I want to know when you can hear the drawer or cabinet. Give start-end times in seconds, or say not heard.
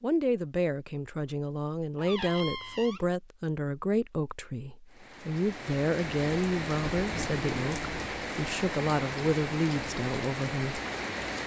1.9-3.0, 7.0-8.1.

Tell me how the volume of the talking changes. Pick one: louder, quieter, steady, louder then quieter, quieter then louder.
steady.